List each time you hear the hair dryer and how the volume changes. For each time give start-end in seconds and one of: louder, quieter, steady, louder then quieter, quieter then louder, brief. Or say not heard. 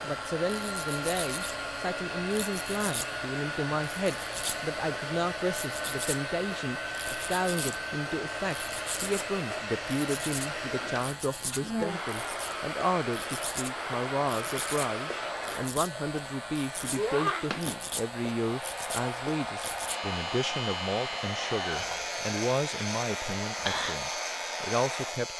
0.0-25.3 steady.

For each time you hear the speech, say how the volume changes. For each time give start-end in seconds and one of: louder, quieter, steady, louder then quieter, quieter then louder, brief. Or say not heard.
0.0-25.3 steady.